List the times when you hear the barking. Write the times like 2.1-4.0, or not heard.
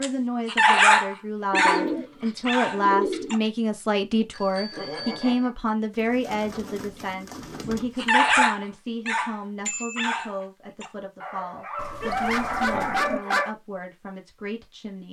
0.0-3.4, 8.0-13.5.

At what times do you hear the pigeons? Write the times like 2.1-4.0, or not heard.
1.5-3.5, 5.9-8.1, 11.8-13.2.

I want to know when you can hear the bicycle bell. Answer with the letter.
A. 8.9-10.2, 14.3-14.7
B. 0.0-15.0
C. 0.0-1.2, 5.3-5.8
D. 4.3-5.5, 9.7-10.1
D.